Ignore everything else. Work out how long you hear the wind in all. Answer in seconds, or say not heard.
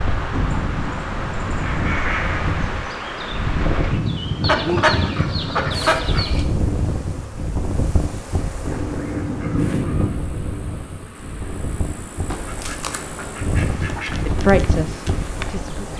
16 s.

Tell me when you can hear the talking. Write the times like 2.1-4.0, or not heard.
14.2-15.9.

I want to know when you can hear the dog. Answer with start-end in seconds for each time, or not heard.
not heard.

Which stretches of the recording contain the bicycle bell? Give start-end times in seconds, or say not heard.
not heard.